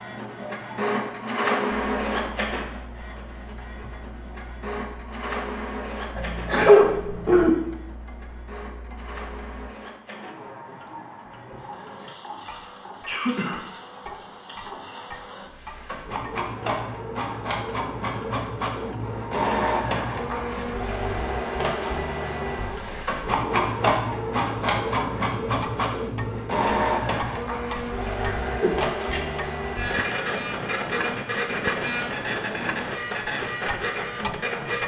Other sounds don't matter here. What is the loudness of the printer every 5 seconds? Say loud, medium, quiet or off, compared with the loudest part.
loud, medium, quiet, loud, loud, loud, loud.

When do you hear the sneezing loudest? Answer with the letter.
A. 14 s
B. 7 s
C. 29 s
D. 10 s
B.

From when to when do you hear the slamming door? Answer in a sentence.
The slamming door can't be heard in this clip.